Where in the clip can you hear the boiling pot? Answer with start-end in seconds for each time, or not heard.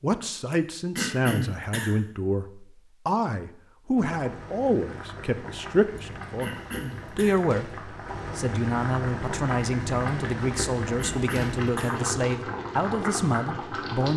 4.0-14.1.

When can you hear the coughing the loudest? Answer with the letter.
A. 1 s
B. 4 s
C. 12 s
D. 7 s
A.